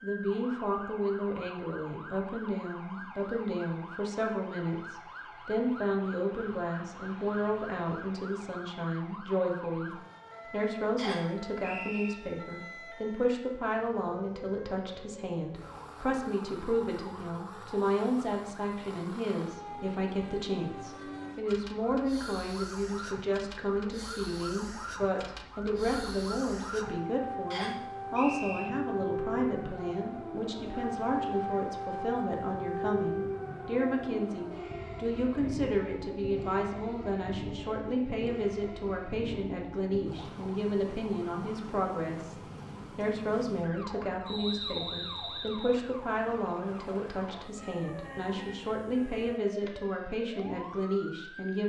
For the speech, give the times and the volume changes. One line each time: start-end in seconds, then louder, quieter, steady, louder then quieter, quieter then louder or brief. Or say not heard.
0.0-51.6 steady.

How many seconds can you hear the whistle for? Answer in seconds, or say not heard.
4 s.